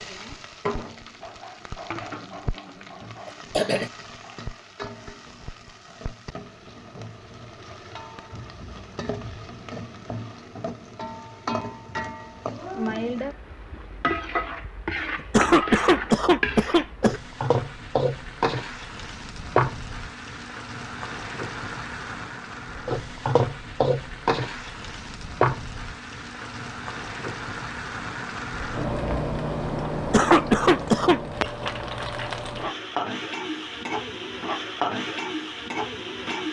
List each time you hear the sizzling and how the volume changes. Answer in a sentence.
The sizzling can be heard from 0.0 to 36.4 s, getting louder.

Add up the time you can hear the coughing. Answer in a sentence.
The coughing can be heard for 4 seconds in total.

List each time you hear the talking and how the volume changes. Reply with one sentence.
You can't hear the talking here.